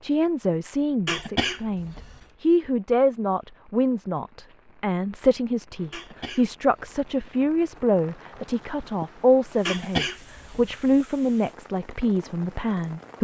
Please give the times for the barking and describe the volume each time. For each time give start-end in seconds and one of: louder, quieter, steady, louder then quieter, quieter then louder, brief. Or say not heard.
not heard.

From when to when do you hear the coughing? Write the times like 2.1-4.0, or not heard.
1.1-2.2, 5.9-7.3, 9.7-11.1.